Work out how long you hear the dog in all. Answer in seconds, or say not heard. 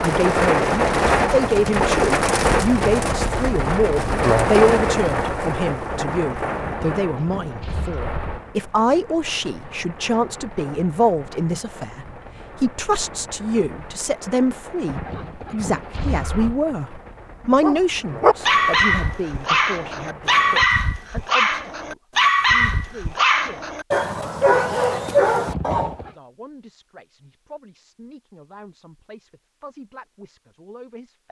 8 s.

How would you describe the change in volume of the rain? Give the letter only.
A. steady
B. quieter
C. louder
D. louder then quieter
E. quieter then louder
B.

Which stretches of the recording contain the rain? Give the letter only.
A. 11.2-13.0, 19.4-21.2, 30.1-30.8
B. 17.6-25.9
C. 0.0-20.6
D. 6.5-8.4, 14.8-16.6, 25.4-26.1
C.